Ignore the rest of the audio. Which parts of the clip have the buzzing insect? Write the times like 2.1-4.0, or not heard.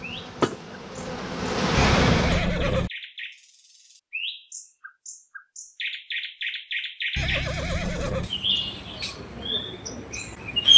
0.0-2.5.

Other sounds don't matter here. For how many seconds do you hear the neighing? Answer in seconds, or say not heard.
2 s.